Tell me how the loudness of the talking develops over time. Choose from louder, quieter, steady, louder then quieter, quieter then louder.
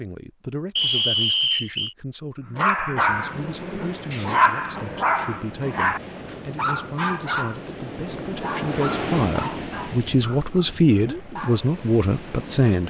louder.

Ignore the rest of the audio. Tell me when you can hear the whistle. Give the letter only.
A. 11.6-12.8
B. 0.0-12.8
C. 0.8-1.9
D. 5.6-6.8
C.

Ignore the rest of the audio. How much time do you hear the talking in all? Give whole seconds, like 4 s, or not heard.
13 s.